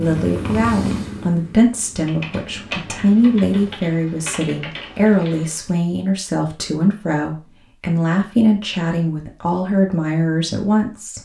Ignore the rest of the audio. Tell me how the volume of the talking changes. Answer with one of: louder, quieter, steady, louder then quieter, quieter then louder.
steady.